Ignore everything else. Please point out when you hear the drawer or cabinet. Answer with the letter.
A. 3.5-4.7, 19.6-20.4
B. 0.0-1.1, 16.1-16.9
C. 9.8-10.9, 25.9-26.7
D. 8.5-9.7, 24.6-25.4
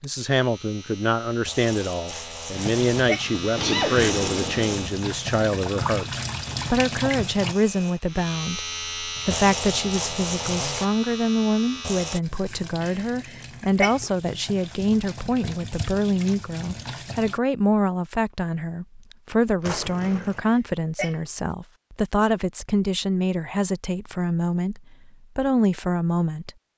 A.